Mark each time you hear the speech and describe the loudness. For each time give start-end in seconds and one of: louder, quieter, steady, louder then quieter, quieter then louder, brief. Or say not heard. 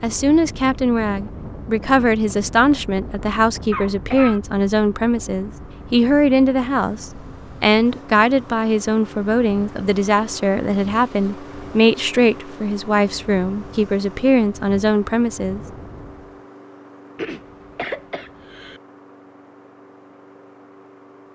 0.0-15.6 steady.